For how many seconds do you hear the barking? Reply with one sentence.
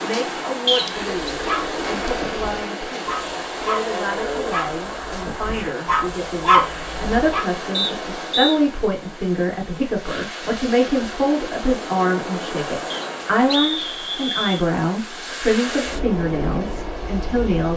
The barking can be heard for 6 seconds in total.